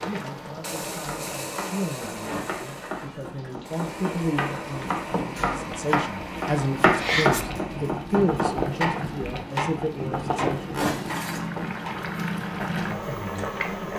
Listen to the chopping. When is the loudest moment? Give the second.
7 s.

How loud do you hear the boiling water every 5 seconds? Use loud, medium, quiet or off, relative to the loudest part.
medium, loud, loud.